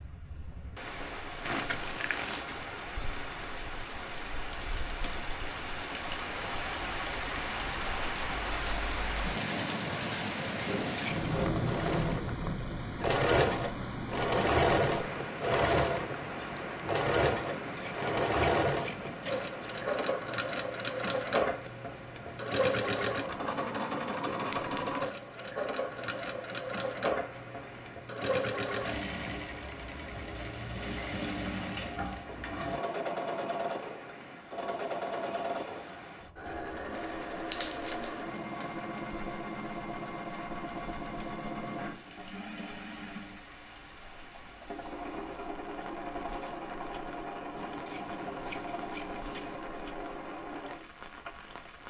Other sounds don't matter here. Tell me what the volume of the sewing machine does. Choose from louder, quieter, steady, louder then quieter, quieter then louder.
quieter.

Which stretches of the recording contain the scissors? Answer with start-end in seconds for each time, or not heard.
10.7-11.5, 17.4-19.5, 47.5-49.6.